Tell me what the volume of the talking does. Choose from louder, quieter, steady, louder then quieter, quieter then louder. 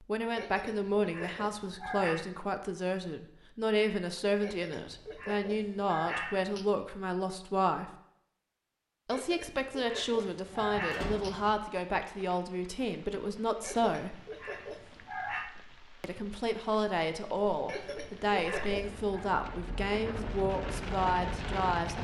steady.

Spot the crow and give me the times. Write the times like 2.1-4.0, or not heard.
not heard.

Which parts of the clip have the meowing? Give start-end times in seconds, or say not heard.
not heard.